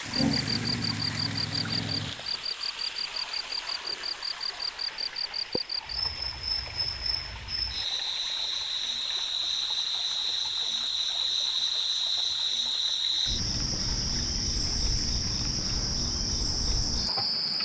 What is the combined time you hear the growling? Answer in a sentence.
The growling can be heard for 2 seconds in total.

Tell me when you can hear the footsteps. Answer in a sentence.
You can't hear the footsteps here.